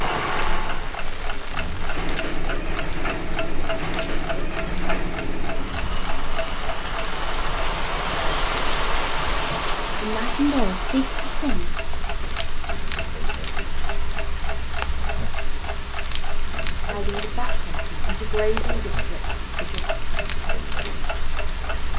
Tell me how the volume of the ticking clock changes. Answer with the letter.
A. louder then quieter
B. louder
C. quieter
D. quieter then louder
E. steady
E.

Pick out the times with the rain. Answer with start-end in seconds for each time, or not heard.
0.0-21.9.